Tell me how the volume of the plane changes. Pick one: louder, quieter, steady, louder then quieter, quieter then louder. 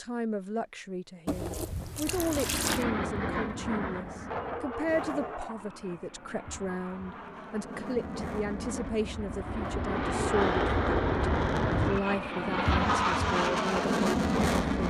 quieter then louder.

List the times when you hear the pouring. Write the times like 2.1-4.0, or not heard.
1.2-2.9.